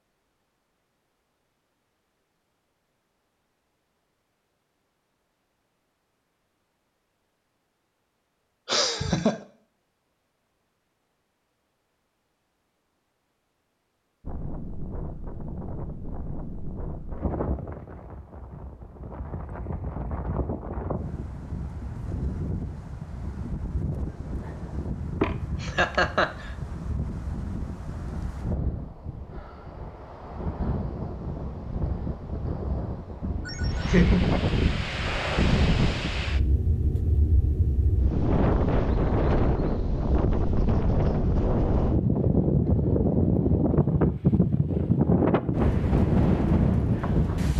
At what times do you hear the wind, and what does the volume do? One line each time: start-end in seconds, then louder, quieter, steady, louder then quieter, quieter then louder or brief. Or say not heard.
14.2-47.5 louder.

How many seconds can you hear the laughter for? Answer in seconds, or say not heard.
3 s.